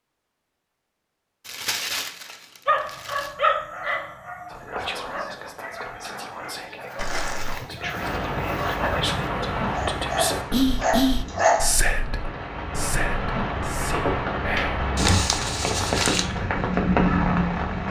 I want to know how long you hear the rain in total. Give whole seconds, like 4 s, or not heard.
10 s.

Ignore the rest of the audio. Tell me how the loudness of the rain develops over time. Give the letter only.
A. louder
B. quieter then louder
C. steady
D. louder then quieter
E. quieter
B.